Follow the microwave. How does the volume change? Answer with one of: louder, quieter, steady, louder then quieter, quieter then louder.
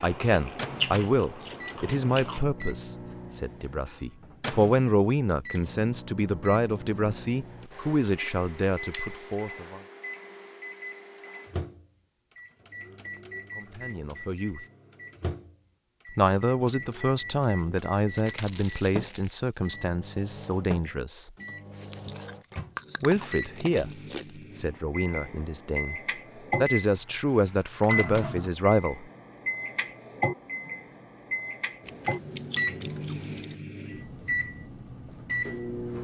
louder.